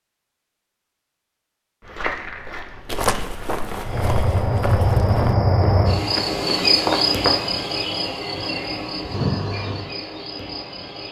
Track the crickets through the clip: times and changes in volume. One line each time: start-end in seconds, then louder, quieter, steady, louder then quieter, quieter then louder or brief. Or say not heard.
3.9-11.0 quieter.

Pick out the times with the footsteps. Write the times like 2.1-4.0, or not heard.
1.8-7.5.